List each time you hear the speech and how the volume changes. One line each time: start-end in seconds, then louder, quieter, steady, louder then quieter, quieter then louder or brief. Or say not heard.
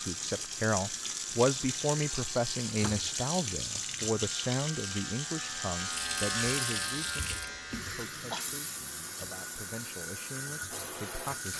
0.0-11.5 quieter.